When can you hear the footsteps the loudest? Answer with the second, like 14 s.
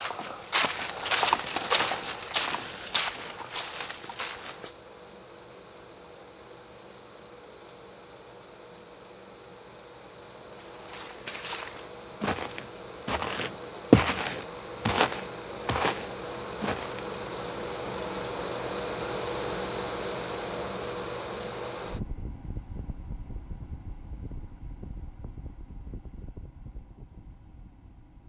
14 s.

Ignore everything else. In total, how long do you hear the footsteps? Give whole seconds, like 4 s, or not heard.
11 s.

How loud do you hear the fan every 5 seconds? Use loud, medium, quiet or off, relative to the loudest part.
quiet, quiet, medium, loud, loud, quiet.